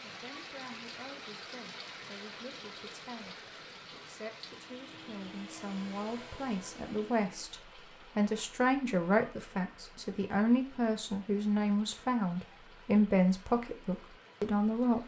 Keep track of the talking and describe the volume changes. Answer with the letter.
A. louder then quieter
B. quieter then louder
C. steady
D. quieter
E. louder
E.